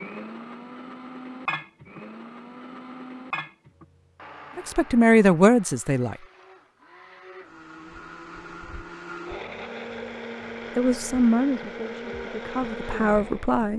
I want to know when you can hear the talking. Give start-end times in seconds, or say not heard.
4.5-6.2, 10.8-13.7.